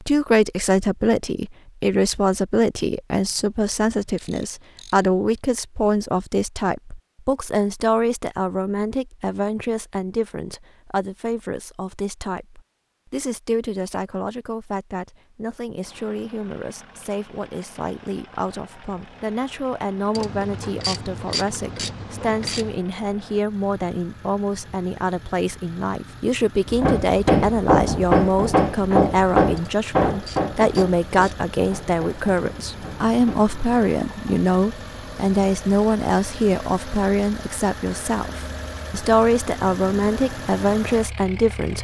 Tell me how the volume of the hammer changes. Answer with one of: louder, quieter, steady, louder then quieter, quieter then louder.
quieter.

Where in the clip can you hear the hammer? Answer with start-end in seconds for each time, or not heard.
26.6-33.5.